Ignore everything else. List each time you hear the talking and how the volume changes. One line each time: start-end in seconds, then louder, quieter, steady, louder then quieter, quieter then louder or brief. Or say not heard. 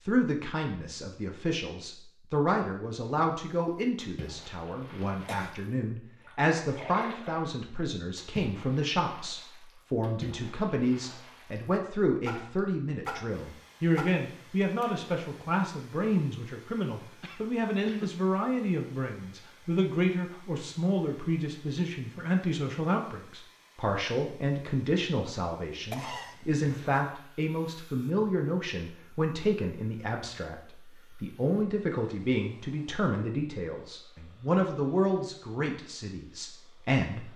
0.0-37.3 steady.